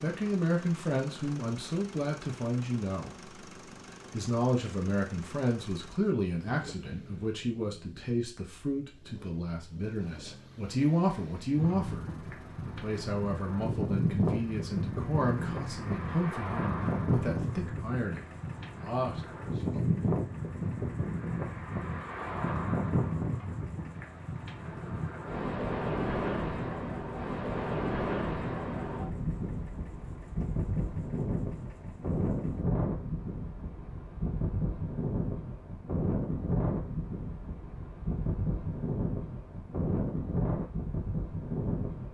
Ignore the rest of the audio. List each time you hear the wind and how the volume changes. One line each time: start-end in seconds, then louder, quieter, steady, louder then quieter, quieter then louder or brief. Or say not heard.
11.6-42.0 steady.